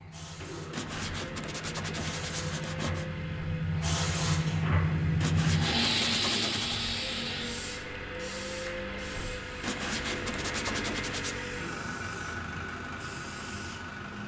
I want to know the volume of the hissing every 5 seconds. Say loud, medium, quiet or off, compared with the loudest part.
loud, loud, quiet.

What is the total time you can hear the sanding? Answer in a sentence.
The sanding can be heard for 6 seconds in total.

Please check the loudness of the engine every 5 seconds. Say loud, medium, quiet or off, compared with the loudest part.
medium, loud, loud.